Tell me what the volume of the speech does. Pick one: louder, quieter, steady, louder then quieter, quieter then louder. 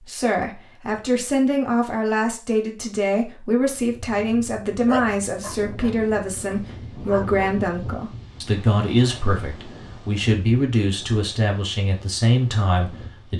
steady.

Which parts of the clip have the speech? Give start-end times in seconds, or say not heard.
0.0-13.3.